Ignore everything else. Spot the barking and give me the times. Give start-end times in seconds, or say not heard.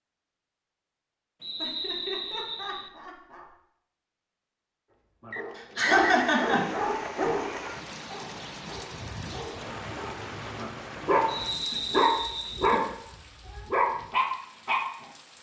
5.2-15.1.